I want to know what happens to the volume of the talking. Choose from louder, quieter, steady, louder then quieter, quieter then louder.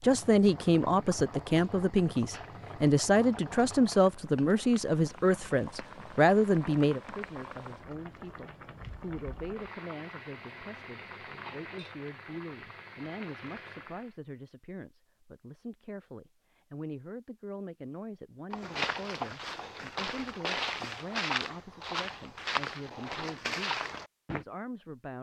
quieter.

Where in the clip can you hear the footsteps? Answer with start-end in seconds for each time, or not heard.
18.5-24.4.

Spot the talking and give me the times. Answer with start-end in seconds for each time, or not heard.
0.0-25.1.